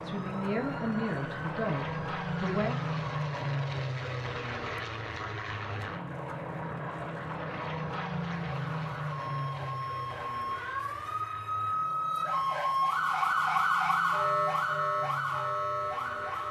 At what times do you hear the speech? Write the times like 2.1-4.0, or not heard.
0.0-2.8.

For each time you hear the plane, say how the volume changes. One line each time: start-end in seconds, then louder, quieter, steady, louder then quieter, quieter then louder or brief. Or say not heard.
0.0-16.4 quieter.